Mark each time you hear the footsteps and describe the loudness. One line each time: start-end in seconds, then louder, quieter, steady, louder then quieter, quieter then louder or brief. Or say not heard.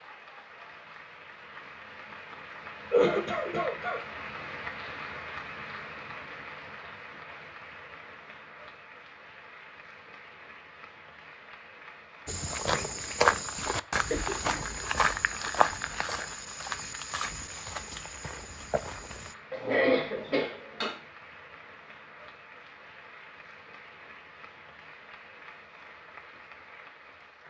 12.2-19.4 quieter.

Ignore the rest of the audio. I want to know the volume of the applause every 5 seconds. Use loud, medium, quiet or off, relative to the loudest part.
loud, loud, medium, medium, medium, medium.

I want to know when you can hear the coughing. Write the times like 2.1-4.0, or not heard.
2.9-4.0, 14.1-14.7, 19.5-20.9.